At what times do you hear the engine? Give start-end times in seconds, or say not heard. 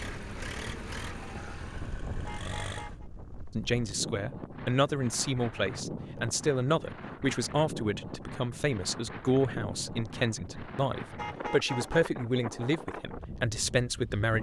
0.0-3.0.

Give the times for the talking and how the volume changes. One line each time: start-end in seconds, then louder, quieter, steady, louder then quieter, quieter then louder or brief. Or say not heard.
3.5-14.3 steady.